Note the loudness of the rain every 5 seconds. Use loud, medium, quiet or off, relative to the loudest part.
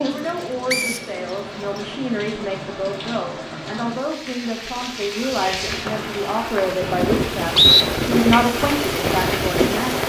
medium, loud.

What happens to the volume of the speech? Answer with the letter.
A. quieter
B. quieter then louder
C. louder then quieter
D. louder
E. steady
D.